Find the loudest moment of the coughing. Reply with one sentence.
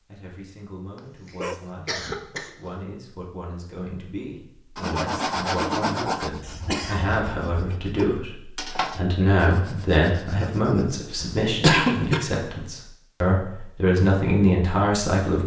The loudest moment of the coughing is at 12 seconds.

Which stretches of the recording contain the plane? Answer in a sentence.
You can't hear the plane here.